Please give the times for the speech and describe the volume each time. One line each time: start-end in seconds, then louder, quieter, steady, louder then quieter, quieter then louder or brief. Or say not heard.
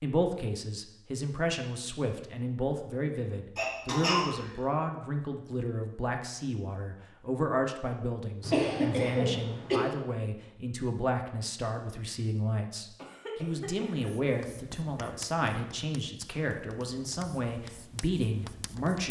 0.0-19.0 steady.